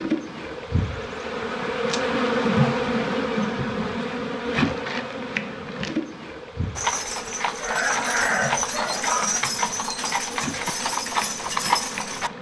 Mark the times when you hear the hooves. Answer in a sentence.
The hooves can be heard from 6.8 to 12.3 s.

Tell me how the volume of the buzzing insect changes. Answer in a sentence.
The volume of the buzzing insect goes down.